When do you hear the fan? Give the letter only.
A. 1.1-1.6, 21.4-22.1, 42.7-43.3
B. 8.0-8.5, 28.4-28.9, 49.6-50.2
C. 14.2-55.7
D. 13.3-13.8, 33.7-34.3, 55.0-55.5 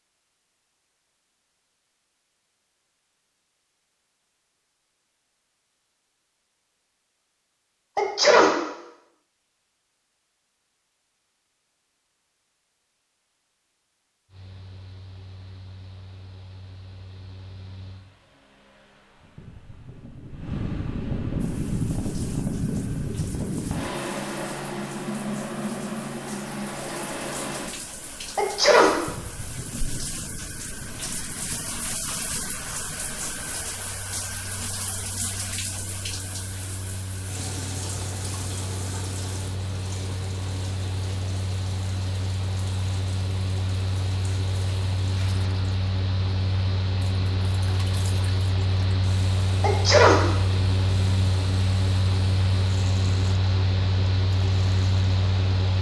C.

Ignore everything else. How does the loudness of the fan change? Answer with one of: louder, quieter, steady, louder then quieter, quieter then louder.
quieter then louder.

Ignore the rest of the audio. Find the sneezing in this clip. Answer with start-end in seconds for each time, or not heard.
8.0-8.5, 28.4-28.9, 49.6-50.2.